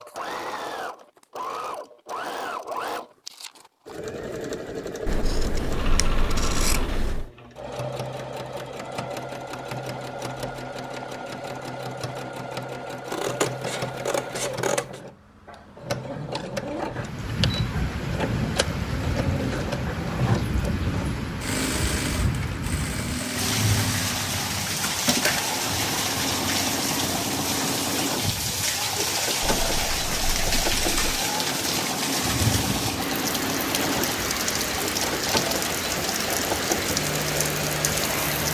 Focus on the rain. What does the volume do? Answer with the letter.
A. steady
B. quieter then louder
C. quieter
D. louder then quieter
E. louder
A.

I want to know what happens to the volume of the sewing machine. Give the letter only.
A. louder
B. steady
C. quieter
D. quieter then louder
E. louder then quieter
B.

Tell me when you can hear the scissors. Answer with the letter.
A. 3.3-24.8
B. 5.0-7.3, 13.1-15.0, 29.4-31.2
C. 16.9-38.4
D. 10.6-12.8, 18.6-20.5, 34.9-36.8
B.